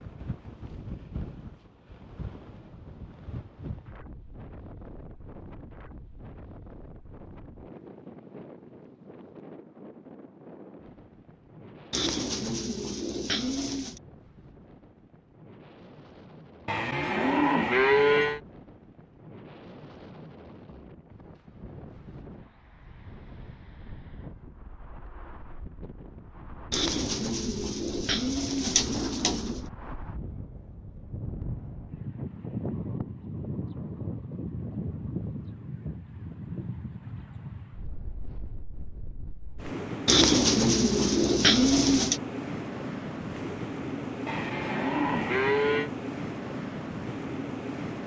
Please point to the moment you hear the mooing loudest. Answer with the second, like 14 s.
18 s.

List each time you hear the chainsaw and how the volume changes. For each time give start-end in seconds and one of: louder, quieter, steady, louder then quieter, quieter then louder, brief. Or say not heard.
not heard.